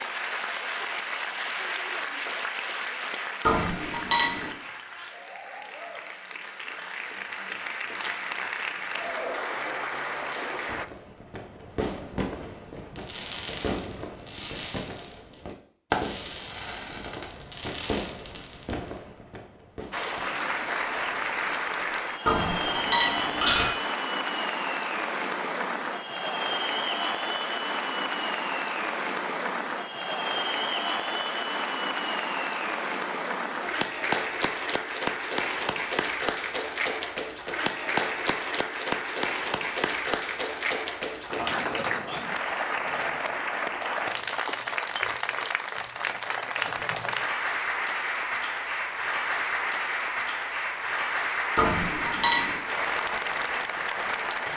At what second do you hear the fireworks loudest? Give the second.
16 s.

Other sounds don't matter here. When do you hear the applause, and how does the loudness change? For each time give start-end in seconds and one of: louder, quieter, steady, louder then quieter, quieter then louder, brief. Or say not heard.
0.0-10.8 quieter then louder
19.9-54.5 steady.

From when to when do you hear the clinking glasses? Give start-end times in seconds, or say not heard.
3.5-4.5, 22.2-23.7, 51.5-52.6.